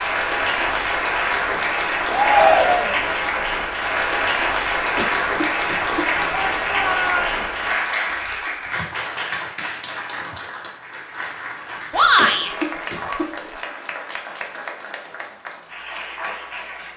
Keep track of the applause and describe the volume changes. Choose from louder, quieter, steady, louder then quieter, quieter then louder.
quieter.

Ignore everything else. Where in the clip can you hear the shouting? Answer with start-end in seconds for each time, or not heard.
2.1-3.0, 6.3-7.5, 11.9-12.5.